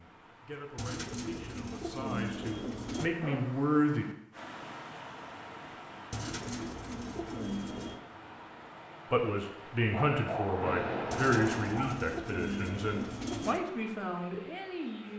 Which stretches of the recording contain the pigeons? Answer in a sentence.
You can hear the pigeons from 0.8 to 3.1 s, from 6.1 to 8.0 s and from 11.1 to 13.7 s.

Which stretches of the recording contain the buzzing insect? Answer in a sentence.
The buzzing insect can't be heard in this clip.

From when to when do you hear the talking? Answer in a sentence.
The talking can be heard from 0.0 to 4.0 s and from 9.1 to 15.1 s.